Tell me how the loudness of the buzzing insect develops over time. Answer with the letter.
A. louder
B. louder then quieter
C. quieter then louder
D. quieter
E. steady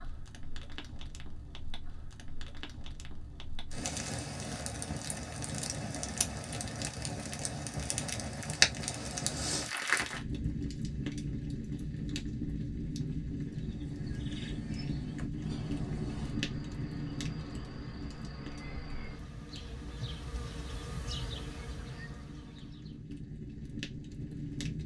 A.